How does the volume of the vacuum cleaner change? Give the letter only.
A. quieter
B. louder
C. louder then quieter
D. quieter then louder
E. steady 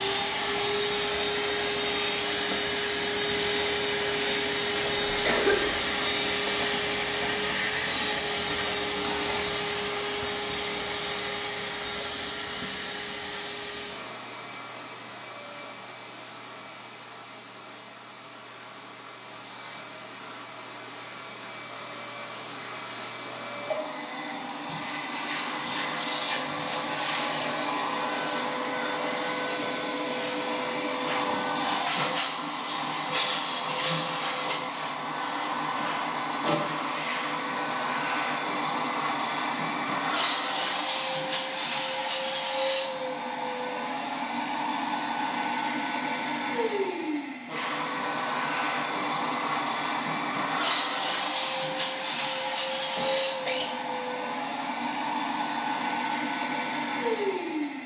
D.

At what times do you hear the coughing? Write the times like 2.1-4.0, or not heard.
5.0-5.8, 53.0-53.8.